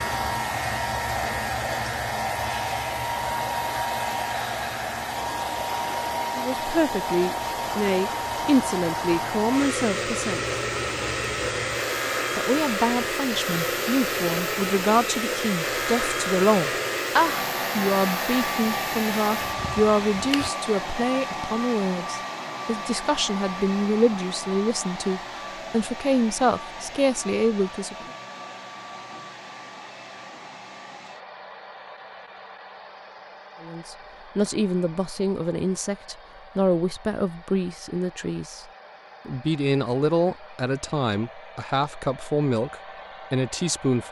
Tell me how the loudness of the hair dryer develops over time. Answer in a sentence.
The volume of the hair dryer goes down.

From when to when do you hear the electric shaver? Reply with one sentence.
The electric shaver can be heard from 0.0 to 20.5 s.